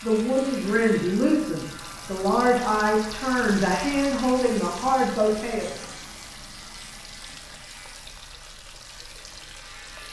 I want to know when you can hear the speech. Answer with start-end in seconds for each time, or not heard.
0.0-5.7.